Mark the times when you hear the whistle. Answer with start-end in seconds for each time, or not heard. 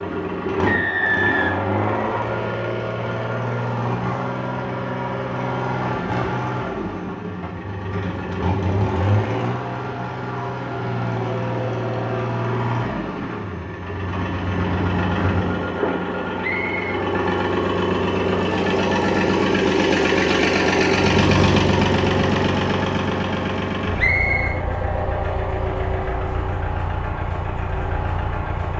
0.7-2.4, 16.4-17.0, 23.9-24.6.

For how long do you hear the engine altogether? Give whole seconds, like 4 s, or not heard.
29 s.